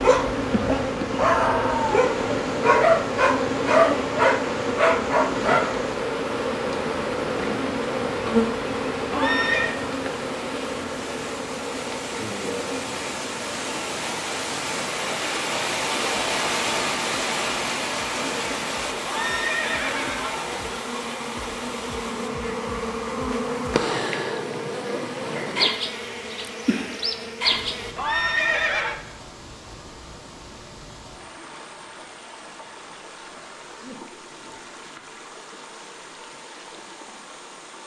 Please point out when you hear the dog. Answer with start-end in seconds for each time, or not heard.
0.0-5.8.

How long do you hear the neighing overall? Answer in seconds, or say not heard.
3 s.